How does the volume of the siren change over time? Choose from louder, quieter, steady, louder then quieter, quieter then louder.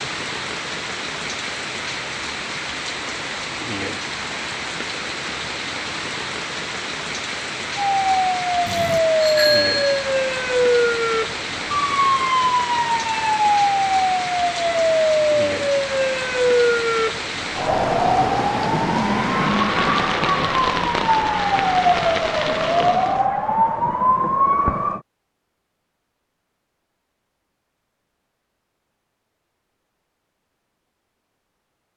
steady.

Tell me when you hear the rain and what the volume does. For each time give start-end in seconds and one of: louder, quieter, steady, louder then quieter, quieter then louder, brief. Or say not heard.
0.0-23.2 steady.